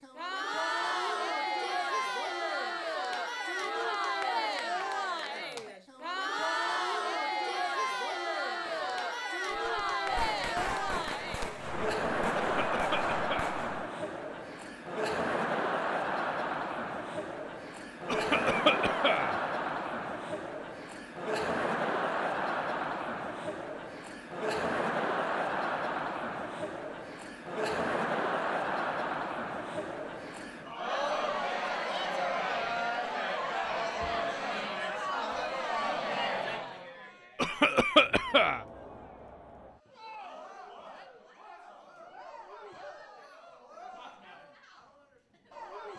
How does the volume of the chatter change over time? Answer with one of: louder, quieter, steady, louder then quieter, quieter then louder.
quieter.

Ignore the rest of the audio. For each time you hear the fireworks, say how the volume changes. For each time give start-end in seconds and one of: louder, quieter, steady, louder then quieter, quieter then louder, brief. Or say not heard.
8.7-13.9 louder.